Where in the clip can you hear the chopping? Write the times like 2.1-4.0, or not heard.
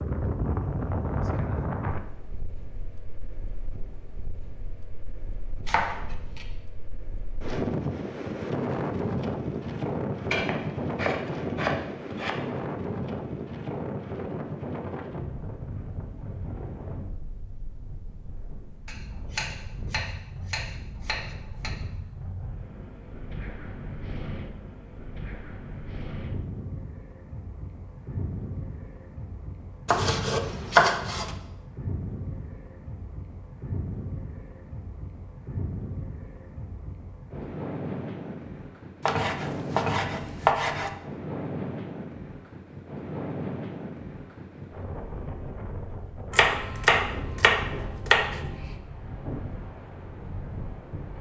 5.7-6.5, 10.3-12.3, 18.9-21.7, 29.9-31.4, 39.0-40.9, 46.3-48.8.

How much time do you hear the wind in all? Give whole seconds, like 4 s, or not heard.
51 s.